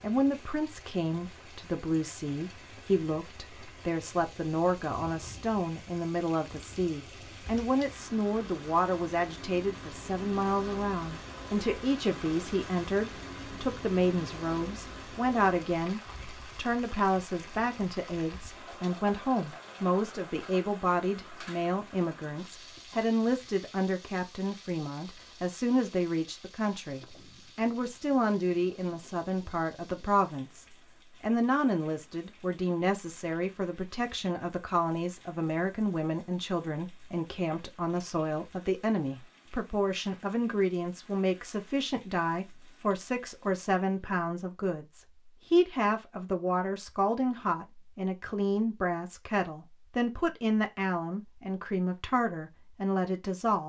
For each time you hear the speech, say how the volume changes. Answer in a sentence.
You can hear the speech from 0.0 to 53.6 s, at a steady volume.